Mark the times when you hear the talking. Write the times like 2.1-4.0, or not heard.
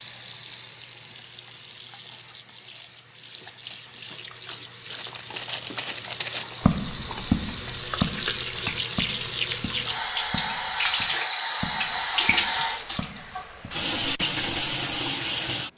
not heard.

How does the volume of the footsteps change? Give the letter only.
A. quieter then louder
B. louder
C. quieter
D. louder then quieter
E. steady
C.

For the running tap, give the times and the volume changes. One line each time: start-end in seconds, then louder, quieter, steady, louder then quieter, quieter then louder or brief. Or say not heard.
0.0-15.7 louder.